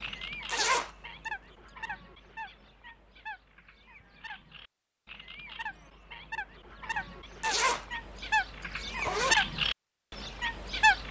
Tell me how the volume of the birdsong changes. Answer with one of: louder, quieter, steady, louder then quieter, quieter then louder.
quieter then louder.